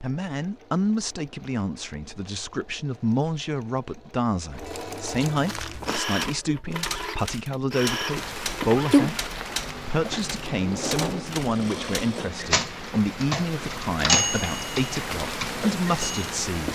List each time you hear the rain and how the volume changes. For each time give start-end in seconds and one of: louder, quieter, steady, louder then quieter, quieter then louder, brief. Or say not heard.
8.1-16.7 quieter then louder.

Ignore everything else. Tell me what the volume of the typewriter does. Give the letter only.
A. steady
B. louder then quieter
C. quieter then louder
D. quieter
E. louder
E.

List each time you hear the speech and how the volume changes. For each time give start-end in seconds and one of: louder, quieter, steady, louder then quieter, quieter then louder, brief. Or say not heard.
0.0-16.7 steady.